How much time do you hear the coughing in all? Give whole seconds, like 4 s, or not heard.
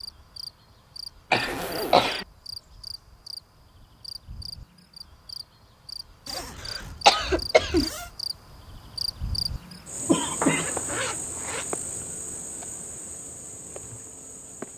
3 s.